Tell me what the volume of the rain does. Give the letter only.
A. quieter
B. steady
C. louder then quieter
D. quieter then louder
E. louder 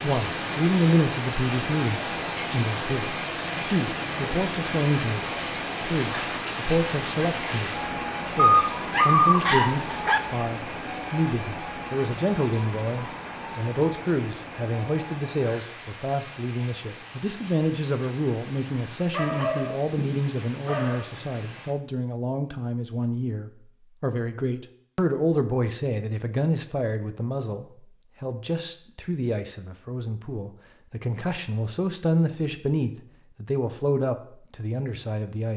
A.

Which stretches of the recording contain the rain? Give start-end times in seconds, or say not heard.
0.0-21.8.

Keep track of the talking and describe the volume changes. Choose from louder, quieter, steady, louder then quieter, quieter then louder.
steady.